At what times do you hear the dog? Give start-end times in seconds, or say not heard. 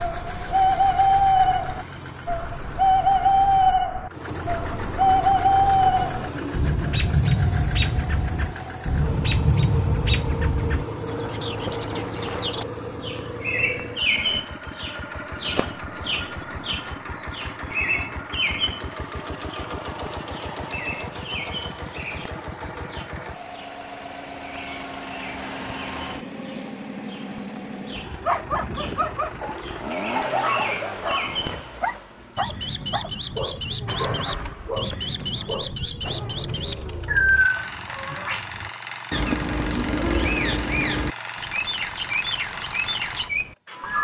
27.9-35.8.